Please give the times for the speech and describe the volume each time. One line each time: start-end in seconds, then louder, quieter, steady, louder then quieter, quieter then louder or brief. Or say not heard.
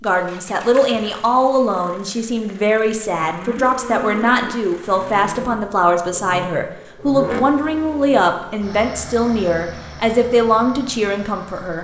0.0-11.7 steady.